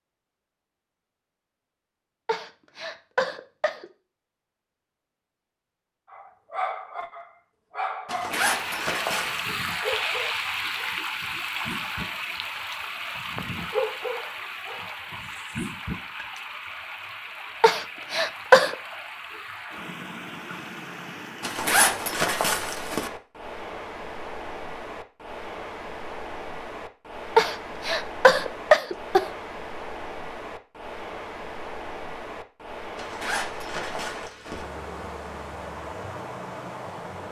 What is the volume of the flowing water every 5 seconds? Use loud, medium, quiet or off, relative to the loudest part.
off, loud, loud, medium, medium, medium, medium, medium.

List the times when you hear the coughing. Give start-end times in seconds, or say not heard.
2.2-3.9, 17.6-18.8, 27.4-29.2.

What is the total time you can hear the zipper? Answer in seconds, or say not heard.
5 s.